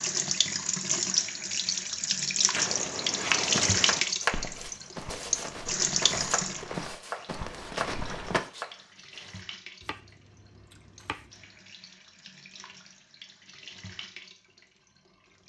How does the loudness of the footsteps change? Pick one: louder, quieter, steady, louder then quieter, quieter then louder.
quieter then louder.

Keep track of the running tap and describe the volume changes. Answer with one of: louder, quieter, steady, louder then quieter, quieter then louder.
quieter.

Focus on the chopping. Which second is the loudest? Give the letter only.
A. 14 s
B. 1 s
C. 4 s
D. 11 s
C.